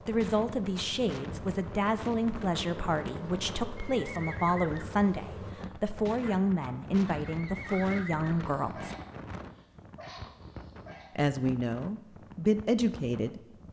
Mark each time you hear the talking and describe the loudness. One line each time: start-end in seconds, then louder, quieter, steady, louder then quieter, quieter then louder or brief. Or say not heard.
0.1-8.9 steady
11.2-13.4 brief.